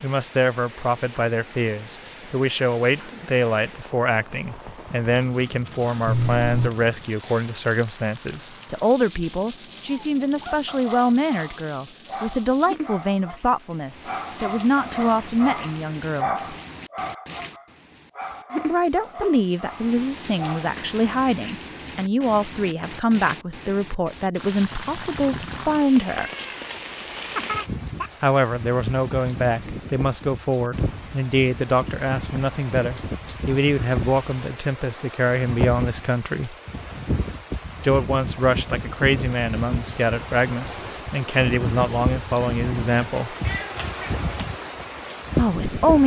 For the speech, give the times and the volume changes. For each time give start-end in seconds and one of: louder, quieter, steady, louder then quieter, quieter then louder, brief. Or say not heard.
0.0-16.6 steady
18.6-26.3 steady
28.2-36.5 steady
37.8-43.4 steady
45.4-46.0 brief.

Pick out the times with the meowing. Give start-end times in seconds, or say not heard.
6.0-6.7, 26.1-28.1, 43.4-44.2.